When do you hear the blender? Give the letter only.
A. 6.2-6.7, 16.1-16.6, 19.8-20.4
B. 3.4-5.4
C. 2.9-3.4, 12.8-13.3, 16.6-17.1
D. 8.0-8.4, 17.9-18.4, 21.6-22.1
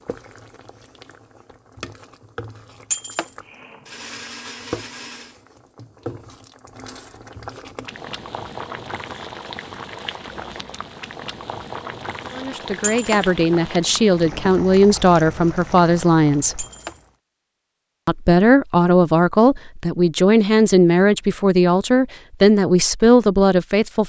B.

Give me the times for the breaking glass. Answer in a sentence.
You can hear the breaking glass from 2.9 to 3.4 s, from 12.8 to 13.3 s and from 16.6 to 17.1 s.